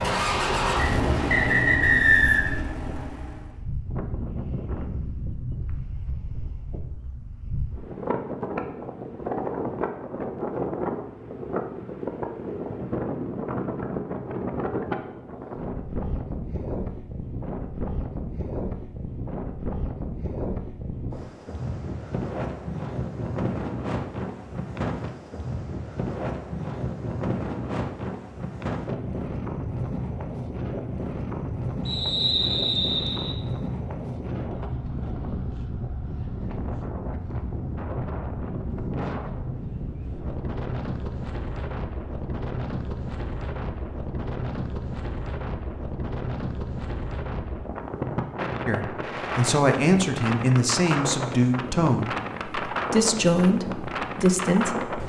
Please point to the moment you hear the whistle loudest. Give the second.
2 s.